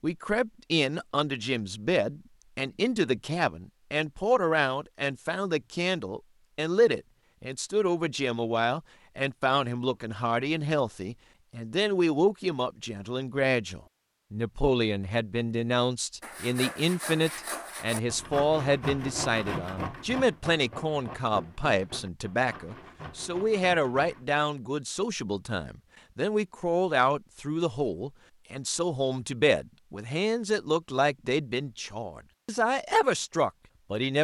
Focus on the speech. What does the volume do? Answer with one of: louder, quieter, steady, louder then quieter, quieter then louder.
steady.